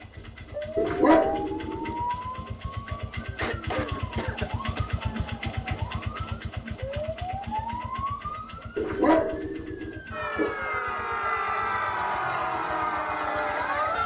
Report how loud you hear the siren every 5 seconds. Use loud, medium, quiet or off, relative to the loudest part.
medium, medium, loud.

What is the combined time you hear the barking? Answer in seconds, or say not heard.
3 s.